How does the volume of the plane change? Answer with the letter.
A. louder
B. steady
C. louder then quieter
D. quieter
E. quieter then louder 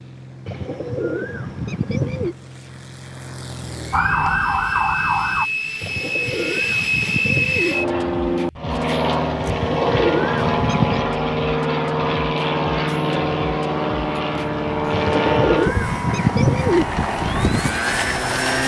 A.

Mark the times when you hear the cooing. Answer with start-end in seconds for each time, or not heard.
0.5-2.4, 5.8-7.8, 9.4-11.1, 14.9-16.9.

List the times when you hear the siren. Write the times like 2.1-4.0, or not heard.
3.9-5.5.